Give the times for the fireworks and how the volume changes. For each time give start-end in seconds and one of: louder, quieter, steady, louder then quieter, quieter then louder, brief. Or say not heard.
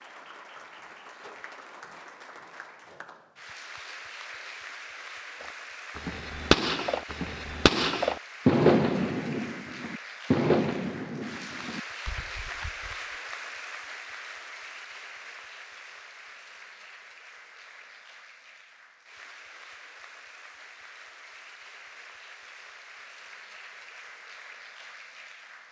5.4-12.9 quieter.